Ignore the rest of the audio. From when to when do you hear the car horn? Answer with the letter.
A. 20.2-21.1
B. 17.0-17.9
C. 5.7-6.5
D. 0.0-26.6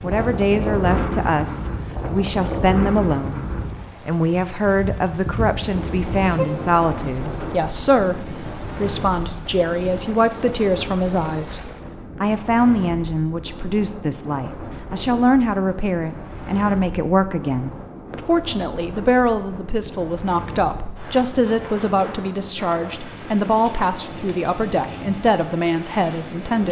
C.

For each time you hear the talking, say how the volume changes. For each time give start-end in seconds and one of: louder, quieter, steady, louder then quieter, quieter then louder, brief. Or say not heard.
0.0-26.6 steady.